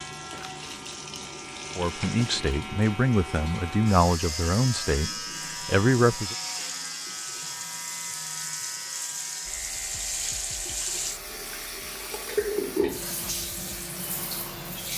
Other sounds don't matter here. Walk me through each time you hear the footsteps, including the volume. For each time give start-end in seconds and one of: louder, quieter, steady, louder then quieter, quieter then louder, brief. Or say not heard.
not heard.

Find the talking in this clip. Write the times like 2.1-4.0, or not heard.
1.8-6.3.